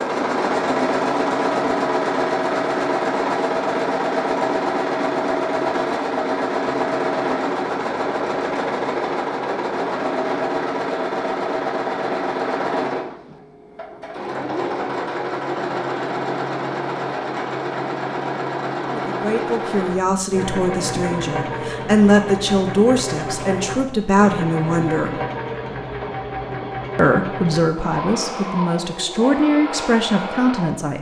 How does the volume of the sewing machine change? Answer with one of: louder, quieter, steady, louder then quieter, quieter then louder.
quieter.